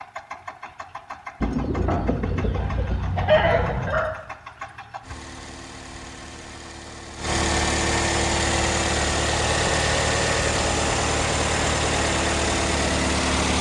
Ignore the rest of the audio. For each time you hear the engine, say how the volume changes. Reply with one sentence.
The engine can be heard from 0.0 to 13.5 s, getting louder.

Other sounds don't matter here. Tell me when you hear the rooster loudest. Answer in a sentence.
The volume of the rooster peaks at 3 seconds.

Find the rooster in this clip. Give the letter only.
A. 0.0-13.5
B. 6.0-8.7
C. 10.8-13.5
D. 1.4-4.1
D.